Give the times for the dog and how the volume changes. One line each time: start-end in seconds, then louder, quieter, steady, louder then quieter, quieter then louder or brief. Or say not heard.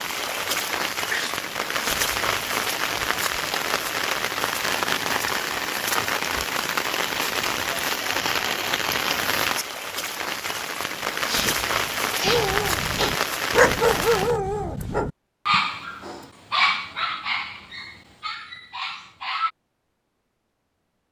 12.2-19.5 quieter.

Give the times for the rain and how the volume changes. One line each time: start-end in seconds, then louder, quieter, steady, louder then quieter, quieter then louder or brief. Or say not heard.
0.0-14.4 steady.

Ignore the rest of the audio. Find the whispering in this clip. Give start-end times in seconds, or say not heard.
not heard.